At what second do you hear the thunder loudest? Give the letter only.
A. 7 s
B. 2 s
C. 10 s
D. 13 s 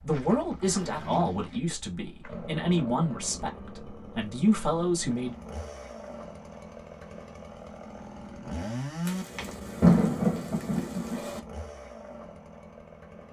C.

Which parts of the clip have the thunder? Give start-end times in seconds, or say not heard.
9.1-11.4.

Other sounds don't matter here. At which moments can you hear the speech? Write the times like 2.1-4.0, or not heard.
0.0-5.3.